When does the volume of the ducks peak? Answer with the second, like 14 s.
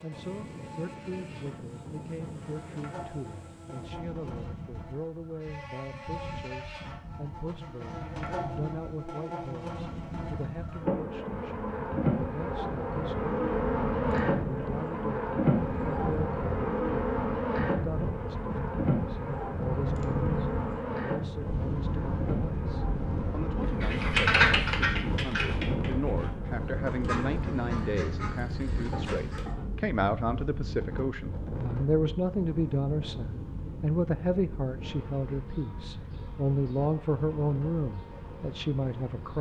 24 s.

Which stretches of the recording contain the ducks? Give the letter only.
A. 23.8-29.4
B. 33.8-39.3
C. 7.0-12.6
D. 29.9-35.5
A.